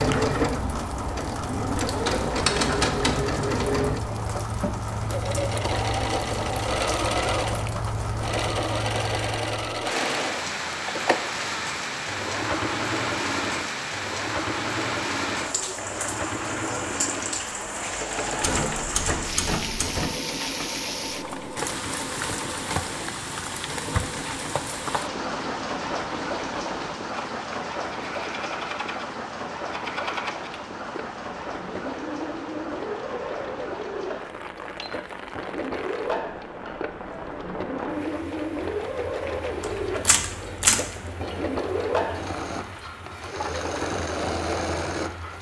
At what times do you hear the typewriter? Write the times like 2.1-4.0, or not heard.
1.9-3.8, 18.4-20.1, 39.6-41.0.